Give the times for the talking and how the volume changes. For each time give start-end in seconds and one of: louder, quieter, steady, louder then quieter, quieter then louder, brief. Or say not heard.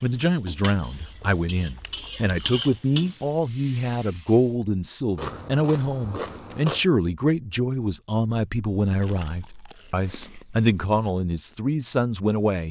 0.0-12.6 steady.